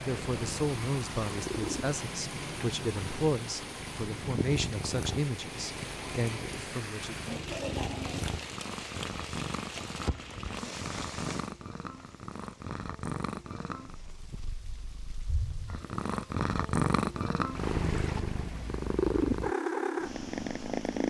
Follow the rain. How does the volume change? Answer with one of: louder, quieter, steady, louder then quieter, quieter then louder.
quieter.